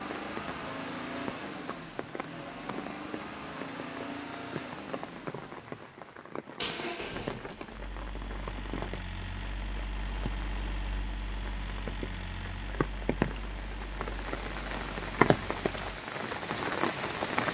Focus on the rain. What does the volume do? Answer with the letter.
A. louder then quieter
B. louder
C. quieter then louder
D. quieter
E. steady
B.